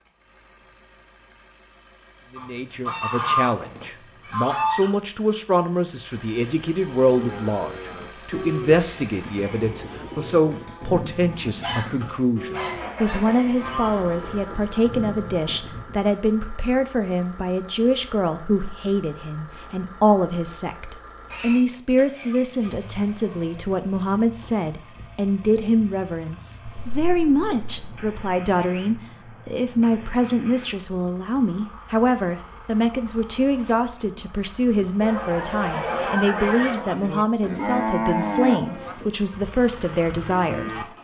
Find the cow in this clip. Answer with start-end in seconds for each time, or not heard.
7.0-16.1, 36.7-40.9.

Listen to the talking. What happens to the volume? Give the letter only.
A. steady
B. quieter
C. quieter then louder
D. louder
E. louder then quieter
A.